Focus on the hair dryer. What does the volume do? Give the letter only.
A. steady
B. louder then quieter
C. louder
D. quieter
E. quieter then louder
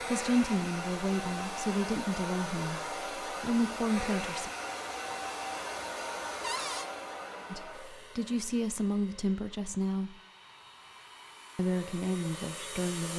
E.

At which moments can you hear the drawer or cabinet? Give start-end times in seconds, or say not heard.
6.4-6.9.